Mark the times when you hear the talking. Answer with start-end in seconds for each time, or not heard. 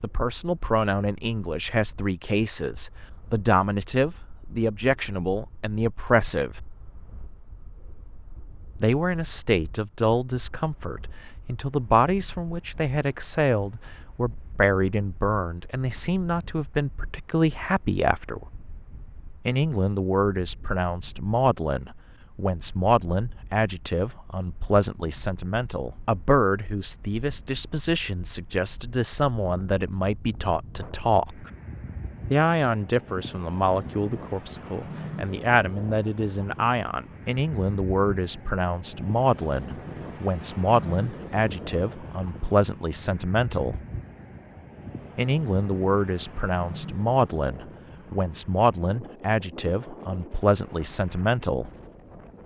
0.0-6.6, 8.8-18.4, 19.4-31.5, 32.3-43.8, 45.1-51.7.